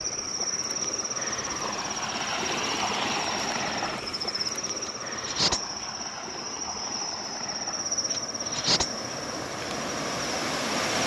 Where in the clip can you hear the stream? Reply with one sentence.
The stream can be heard from 0.0 to 11.0 s.